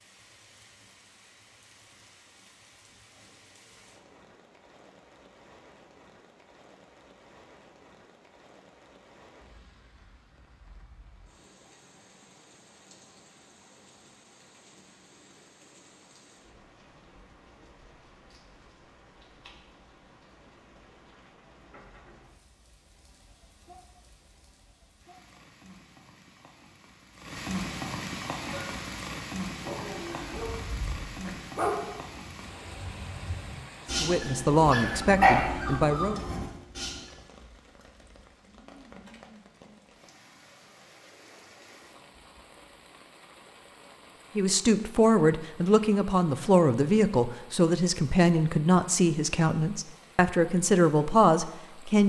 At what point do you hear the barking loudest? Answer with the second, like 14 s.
35 s.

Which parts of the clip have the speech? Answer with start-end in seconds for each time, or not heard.
34.0-36.2, 44.4-52.0.